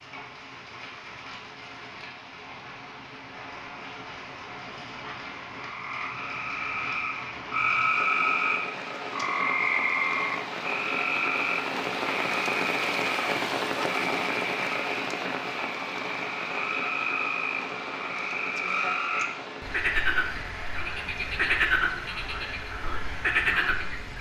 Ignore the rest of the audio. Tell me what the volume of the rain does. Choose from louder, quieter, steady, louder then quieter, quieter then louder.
louder then quieter.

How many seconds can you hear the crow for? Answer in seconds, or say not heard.
not heard.